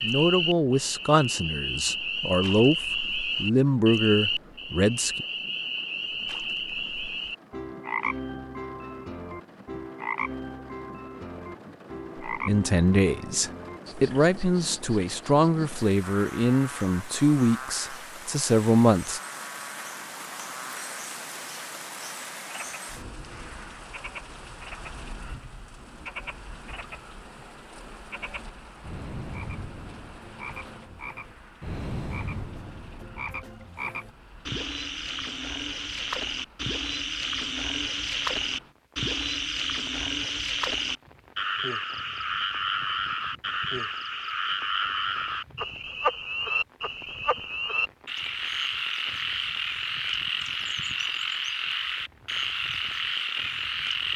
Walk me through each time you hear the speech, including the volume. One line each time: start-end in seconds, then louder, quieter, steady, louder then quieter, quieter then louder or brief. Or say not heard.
0.0-5.2 quieter then louder
12.2-19.2 steady.